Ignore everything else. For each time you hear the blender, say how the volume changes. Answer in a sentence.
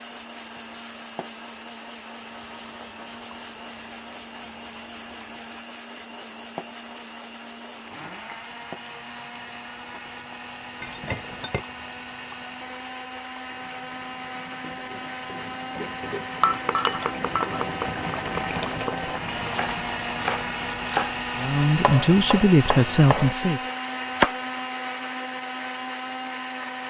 The blender can be heard from 0.0 to 26.8 s, getting louder.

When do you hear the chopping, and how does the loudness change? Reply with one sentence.
The chopping can be heard from 15.8 to 24.6 s, at a steady volume.